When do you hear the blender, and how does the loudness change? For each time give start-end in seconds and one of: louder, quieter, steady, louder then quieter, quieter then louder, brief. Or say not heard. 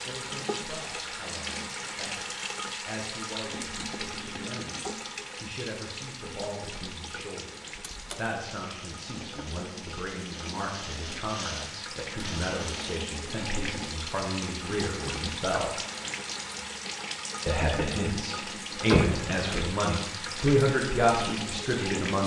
8.6-12.9 louder.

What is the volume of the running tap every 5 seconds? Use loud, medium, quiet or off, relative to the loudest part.
loud, medium, loud, loud, loud.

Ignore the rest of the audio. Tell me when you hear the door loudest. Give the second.
19 s.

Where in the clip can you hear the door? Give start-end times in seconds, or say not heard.
7.8-8.3, 18.9-19.6.